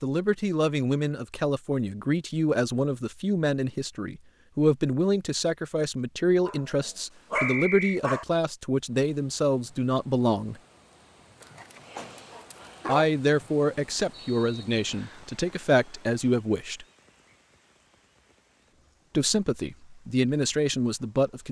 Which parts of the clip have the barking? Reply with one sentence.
You can hear the barking from 6.5 to 8.2 s and from 11.4 to 13.1 s.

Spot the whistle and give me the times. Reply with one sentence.
The whistle can be heard from 7.3 to 8.0 s and from 14.1 to 15.2 s.